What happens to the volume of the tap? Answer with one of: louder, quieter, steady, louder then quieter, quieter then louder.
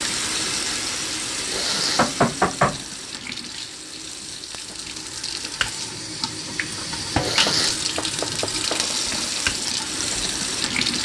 quieter then louder.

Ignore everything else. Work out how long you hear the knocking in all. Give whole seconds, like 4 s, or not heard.
2 s.